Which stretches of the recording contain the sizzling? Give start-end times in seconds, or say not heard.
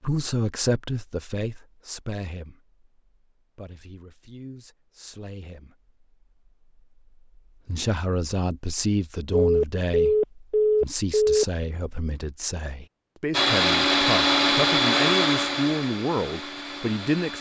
not heard.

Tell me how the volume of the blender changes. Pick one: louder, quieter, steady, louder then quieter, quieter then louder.
quieter.